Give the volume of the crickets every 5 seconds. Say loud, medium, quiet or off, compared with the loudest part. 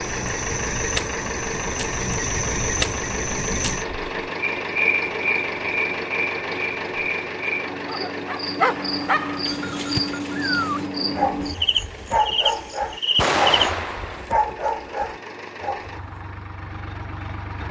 loud, loud, loud, off.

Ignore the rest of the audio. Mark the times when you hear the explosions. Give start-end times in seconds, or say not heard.
13.2-14.2.